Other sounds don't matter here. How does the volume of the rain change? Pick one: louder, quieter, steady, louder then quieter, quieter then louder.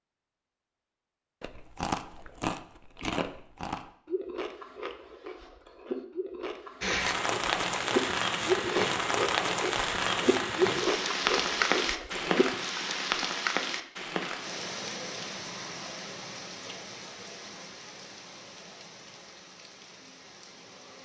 quieter.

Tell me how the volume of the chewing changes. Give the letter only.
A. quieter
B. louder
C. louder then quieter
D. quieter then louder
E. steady
D.